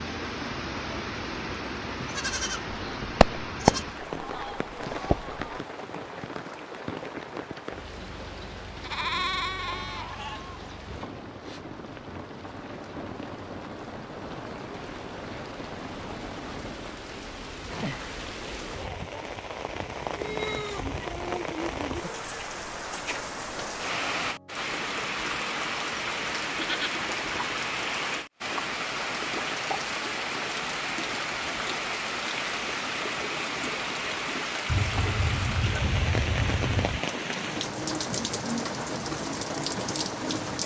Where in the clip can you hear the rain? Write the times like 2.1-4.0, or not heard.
0.0-40.6.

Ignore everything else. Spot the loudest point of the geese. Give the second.
4 s.